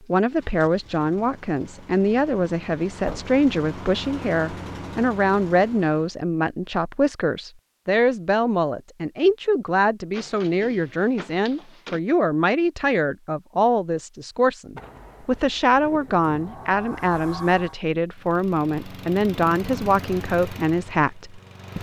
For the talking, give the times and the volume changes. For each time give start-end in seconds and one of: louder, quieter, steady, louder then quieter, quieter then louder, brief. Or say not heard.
0.1-21.7 steady.